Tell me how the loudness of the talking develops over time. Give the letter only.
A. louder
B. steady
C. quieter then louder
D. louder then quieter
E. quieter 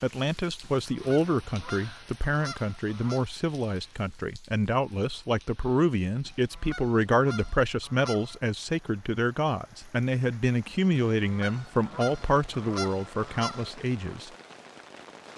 B.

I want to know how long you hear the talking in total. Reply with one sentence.
The talking can be heard for 14 seconds in total.